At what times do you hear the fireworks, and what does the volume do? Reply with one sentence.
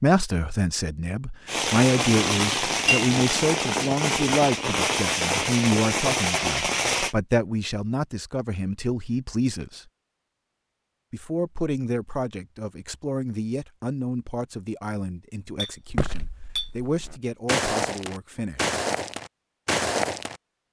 You can hear the fireworks from 1.4 to 7.2 s, at a steady volume.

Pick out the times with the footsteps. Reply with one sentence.
You can hear the footsteps from 15.8 to 20.4 s.